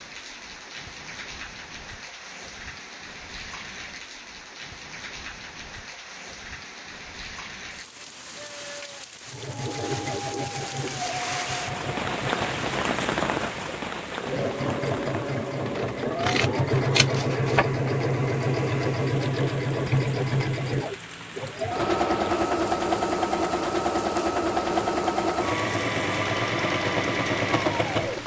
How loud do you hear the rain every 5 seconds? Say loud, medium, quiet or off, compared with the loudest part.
medium, medium, loud, medium, medium, medium.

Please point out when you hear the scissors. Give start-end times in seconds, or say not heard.
15.7-17.6.